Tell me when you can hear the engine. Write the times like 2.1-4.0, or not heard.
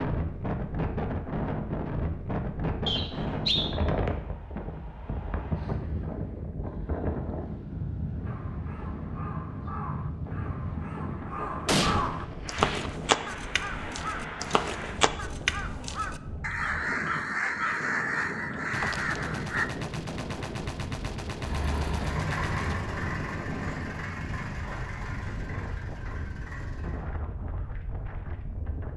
21.4-27.1.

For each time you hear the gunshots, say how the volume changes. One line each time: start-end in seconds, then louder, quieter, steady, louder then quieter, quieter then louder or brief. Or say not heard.
11.7-13.0 brief
18.7-22.8 steady.